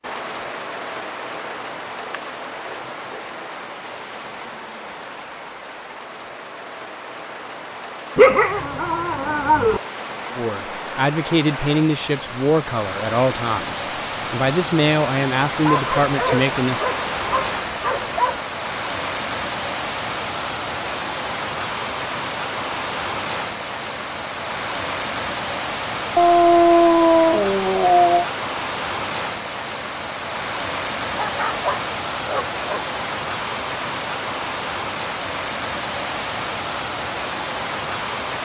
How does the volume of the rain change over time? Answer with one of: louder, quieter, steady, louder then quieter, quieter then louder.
louder.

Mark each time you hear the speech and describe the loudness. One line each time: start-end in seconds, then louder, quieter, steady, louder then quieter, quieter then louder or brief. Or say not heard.
10.3-16.9 steady.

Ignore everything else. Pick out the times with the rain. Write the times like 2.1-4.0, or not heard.
0.0-38.3.